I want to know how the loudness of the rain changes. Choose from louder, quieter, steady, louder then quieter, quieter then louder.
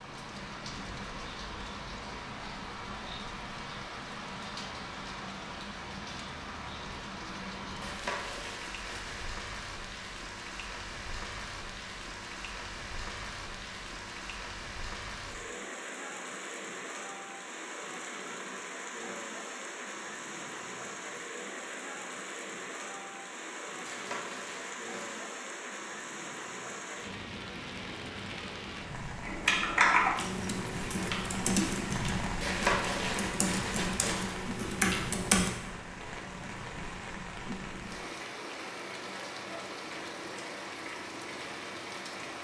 steady.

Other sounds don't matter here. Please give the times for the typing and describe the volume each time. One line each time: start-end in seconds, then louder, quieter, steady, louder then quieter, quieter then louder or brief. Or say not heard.
29.2-35.5 quieter then louder.